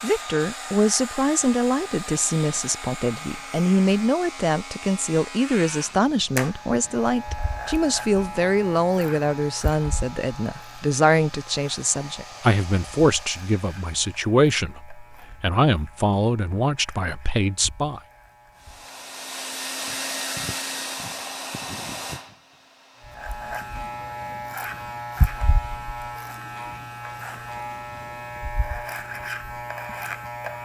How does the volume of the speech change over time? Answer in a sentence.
The volume of the speech stays about the same.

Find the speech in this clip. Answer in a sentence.
You can hear the speech from 0.0 to 18.0 s.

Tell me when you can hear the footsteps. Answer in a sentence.
The footsteps can't be heard in this clip.